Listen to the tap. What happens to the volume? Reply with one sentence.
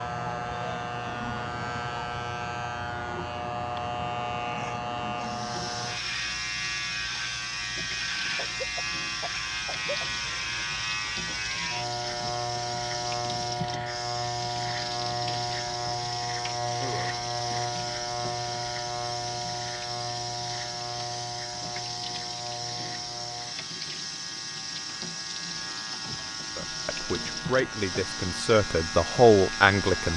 The volume of the tap stays about the same.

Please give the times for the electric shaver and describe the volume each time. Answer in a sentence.
You can hear the electric shaver from 0.0 to 30.1 s, getting quieter.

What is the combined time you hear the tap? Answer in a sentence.
You can hear the tap for 25 seconds altogether.